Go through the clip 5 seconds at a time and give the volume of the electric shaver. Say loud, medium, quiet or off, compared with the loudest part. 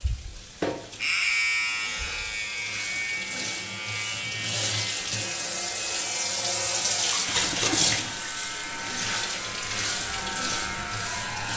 loud, medium, loud.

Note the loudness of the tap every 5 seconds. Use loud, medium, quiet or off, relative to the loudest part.
medium, loud, medium.